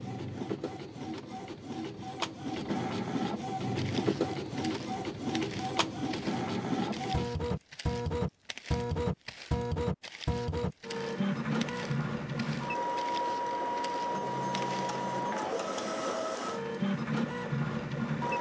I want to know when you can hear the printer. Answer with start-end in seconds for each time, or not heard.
0.0-18.3.